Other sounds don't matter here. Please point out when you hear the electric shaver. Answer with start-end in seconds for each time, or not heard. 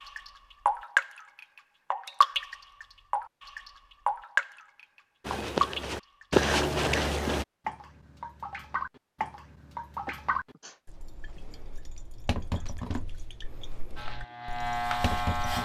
13.9-15.6.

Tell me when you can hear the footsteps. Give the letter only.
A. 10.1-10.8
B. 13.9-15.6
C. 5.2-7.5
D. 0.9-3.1
C.